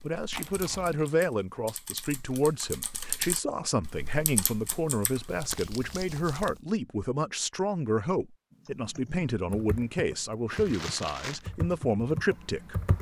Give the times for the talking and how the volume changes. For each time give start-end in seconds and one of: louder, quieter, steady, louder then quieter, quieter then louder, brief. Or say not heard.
0.0-12.8 steady.